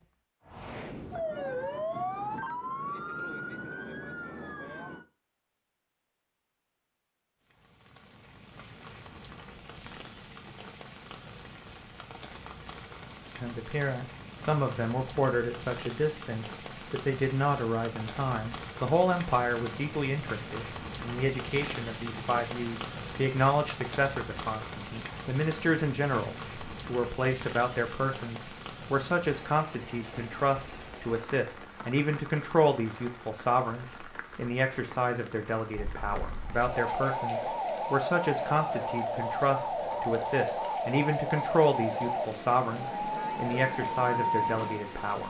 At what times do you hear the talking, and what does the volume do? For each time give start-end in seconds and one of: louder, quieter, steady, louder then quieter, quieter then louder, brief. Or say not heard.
13.3-45.2 steady.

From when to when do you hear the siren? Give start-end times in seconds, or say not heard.
0.0-5.0, 35.7-45.2.